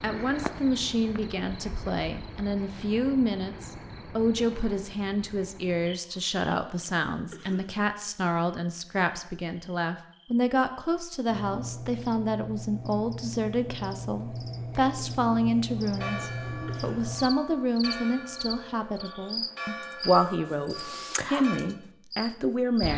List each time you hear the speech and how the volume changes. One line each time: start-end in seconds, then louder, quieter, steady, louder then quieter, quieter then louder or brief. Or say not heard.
0.0-22.9 steady.